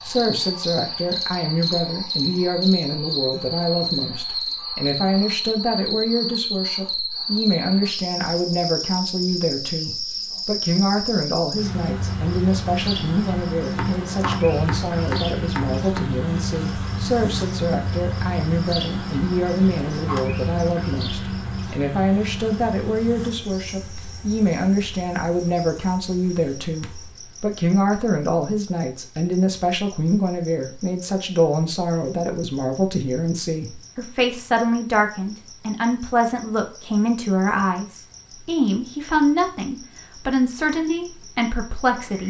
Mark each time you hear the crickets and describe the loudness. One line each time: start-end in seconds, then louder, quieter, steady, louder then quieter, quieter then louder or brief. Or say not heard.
0.0-42.2 quieter.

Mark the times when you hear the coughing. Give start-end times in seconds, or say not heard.
not heard.